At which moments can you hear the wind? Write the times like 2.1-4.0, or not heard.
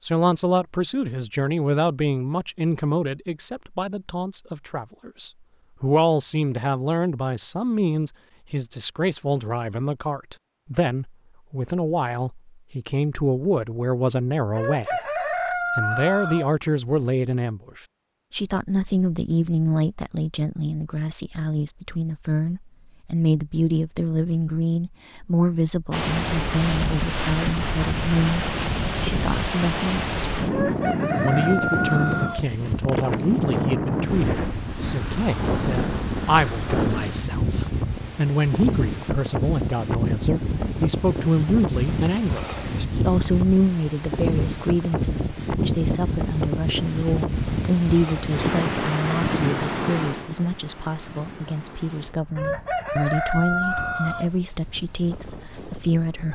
25.9-56.2.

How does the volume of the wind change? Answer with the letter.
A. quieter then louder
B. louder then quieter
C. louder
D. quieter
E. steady
D.